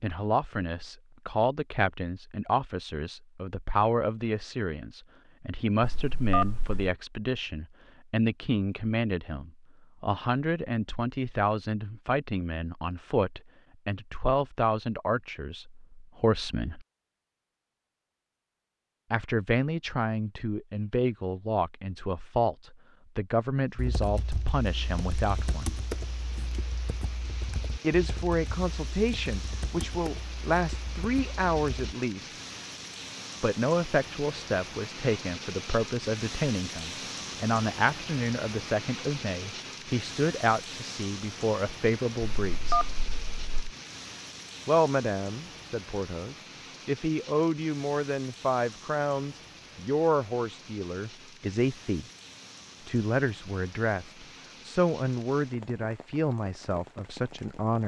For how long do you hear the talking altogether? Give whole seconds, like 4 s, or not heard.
50 s.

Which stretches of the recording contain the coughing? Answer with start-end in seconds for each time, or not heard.
not heard.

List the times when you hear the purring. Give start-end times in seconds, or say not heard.
not heard.